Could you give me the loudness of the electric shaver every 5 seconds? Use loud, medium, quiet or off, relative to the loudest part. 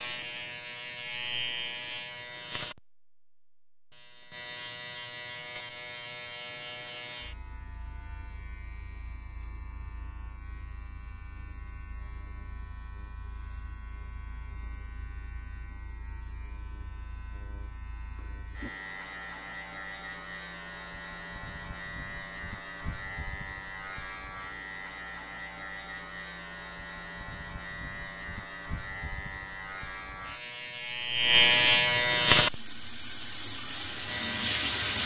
quiet, quiet, quiet, quiet, quiet, quiet, loud.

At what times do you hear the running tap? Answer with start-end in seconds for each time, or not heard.
32.3-35.0.